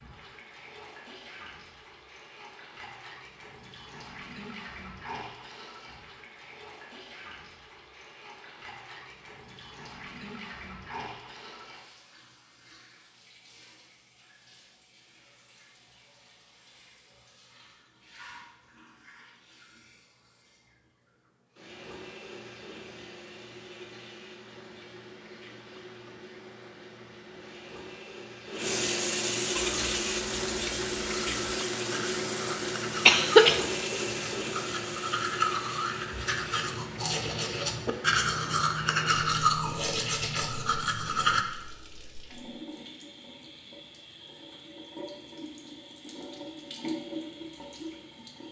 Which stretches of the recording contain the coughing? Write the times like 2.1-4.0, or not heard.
33.0-33.6.